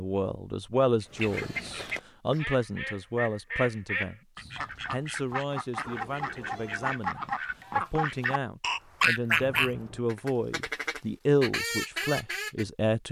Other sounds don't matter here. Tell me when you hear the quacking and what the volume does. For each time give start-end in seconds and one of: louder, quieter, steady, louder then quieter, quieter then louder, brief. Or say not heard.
1.0-12.7 louder then quieter.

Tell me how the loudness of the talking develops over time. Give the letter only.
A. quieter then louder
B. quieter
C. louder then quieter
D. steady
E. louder
A.